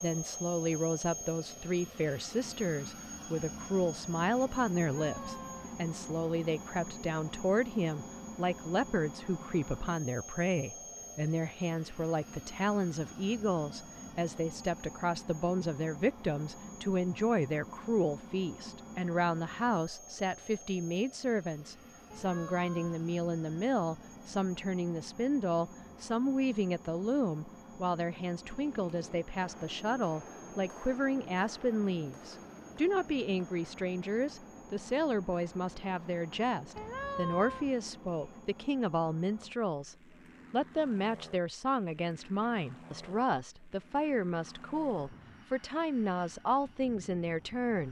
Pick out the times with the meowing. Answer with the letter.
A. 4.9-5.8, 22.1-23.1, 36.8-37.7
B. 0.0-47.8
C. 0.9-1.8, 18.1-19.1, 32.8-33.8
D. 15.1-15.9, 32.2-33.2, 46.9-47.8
A.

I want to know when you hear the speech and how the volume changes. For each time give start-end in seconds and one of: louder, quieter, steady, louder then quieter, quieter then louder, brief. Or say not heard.
0.0-47.8 steady.